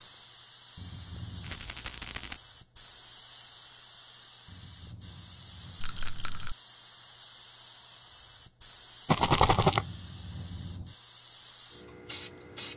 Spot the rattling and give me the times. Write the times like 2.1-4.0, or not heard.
1.4-2.4, 5.8-6.5, 9.1-9.8.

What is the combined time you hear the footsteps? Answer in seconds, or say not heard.
not heard.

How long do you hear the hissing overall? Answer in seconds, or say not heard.
13 s.